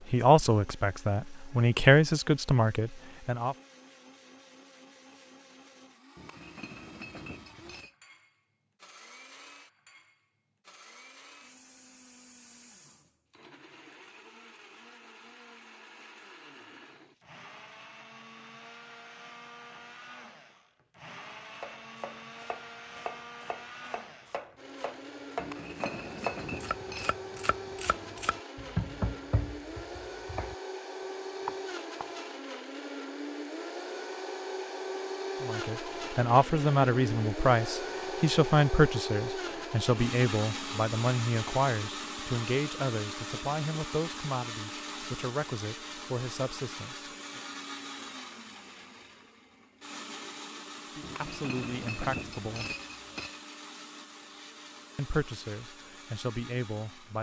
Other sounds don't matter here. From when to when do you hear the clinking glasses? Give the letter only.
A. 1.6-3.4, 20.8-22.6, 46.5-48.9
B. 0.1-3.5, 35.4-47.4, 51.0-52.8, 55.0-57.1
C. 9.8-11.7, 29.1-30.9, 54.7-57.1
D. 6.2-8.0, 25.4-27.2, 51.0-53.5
D.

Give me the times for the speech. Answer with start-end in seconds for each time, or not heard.
0.1-3.5, 35.4-47.4, 51.0-52.8, 55.0-57.1.